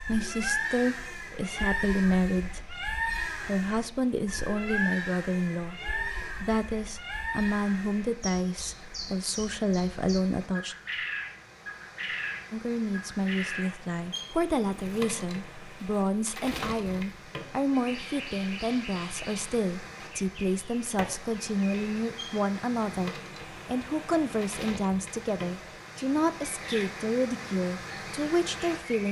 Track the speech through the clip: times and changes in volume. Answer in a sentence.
You can hear the speech from 0.1 to 10.8 s, at a steady volume; and from 12.5 to 29.0 s, at a steady volume.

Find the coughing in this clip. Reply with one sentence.
The coughing can't be heard in this clip.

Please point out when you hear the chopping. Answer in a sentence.
The chopping can't be heard in this clip.